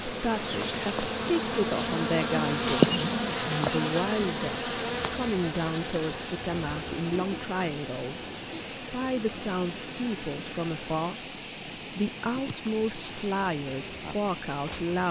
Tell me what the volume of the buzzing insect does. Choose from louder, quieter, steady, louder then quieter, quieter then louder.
quieter.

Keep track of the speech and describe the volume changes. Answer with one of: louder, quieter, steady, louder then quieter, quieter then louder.
steady.